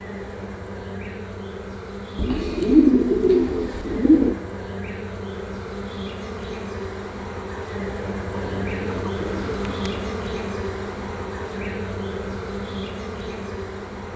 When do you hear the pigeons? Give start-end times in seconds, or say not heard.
2.1-4.3, 8.3-10.1.